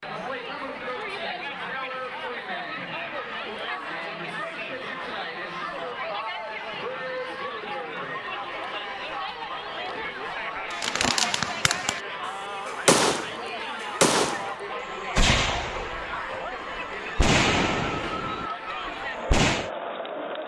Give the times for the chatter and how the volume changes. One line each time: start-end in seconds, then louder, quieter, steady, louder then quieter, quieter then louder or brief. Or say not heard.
0.0-20.4 steady.